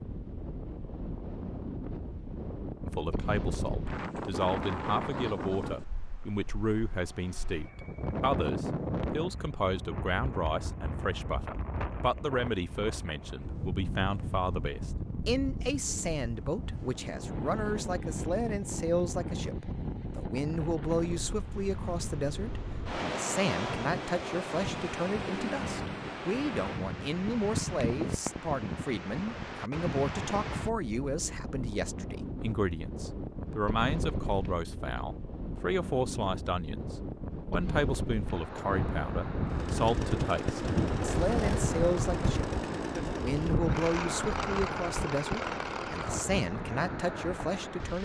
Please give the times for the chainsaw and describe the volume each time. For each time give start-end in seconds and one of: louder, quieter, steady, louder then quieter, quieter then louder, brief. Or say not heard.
39.5-46.3 steady.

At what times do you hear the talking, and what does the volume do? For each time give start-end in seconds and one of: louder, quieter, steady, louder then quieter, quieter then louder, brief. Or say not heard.
2.9-48.0 steady.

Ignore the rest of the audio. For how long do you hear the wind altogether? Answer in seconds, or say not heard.
48 s.